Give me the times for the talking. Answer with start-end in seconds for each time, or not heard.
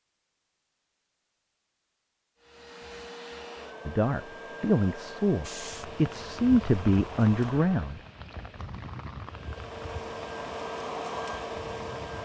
3.9-8.0.